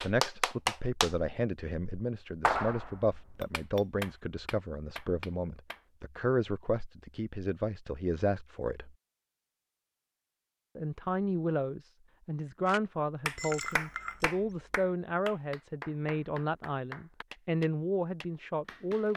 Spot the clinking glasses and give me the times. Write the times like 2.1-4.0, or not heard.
3.4-3.9, 13.3-14.2.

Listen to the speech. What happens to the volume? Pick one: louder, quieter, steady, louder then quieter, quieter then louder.
steady.